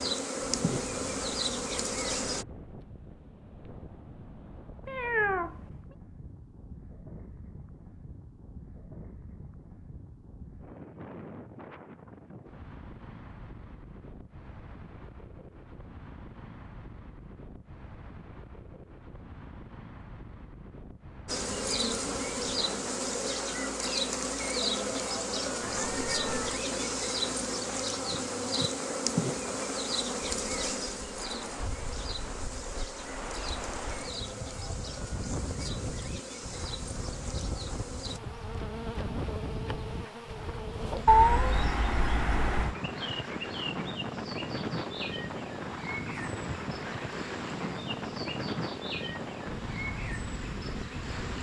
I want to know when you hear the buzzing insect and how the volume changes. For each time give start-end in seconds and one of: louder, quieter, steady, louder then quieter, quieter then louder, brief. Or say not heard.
0.0-2.5 brief
21.2-51.3 quieter.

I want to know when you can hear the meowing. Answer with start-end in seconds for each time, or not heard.
4.8-5.6, 25.6-26.6, 41.0-42.8.